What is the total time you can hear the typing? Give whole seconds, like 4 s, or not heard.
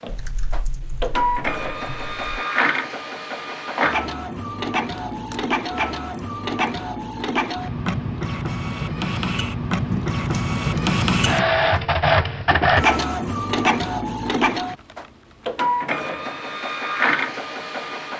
6 s.